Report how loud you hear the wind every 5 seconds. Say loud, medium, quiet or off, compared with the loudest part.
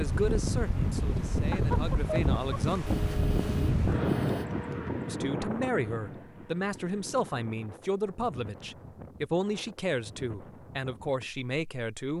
loud, medium, quiet.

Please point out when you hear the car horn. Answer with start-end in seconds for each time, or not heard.
2.9-4.5.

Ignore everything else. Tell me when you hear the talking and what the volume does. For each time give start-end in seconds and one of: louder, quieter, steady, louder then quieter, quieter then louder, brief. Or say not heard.
0.0-2.9 brief
5.0-12.1 steady.